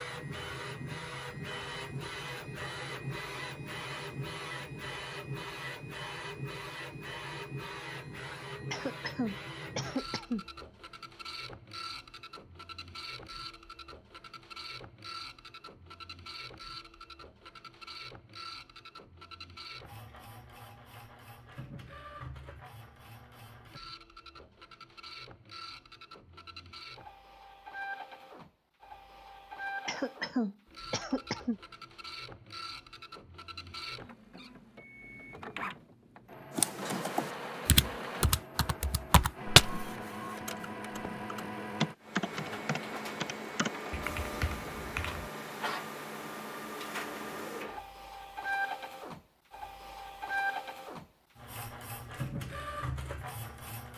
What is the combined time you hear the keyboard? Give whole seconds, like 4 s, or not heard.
9 s.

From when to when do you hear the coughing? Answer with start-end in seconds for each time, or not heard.
8.7-10.4, 29.9-31.6.